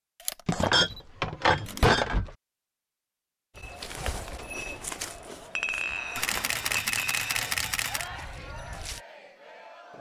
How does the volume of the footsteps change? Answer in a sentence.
The volume of the footsteps goes down.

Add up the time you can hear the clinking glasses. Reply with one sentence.
You can hear the clinking glasses for 4 seconds altogether.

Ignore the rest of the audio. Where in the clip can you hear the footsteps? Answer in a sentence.
The footsteps can be heard from 3.5 to 9.0 s.